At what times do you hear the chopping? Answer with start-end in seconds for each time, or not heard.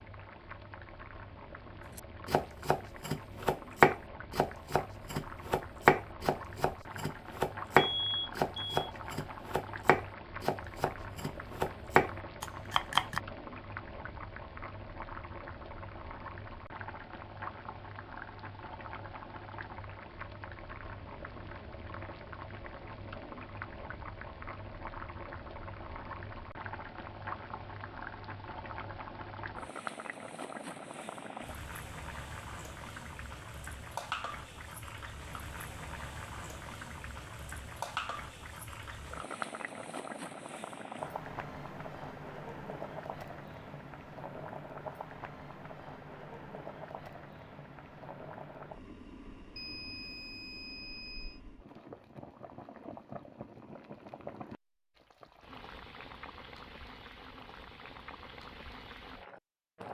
1.9-13.2.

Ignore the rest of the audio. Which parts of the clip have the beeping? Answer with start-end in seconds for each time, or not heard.
7.8-8.7, 49.5-51.4.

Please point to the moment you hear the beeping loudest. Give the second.
8 s.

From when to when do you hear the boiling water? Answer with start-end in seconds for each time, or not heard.
0.0-59.8.